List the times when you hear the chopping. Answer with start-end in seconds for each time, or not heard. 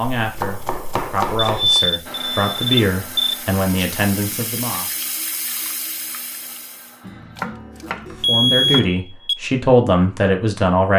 0.1-1.8, 7.0-8.9.